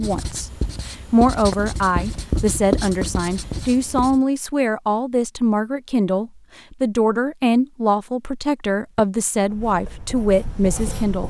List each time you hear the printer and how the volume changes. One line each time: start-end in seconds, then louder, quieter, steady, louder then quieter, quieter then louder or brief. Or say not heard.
not heard.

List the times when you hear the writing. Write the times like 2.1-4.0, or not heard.
0.0-4.2, 9.4-11.2.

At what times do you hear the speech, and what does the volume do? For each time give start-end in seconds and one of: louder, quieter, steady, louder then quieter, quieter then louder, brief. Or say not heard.
0.0-11.2 steady.